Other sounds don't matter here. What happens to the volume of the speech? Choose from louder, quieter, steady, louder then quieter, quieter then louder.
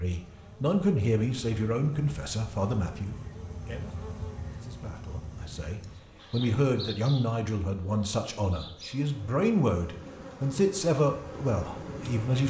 quieter then louder.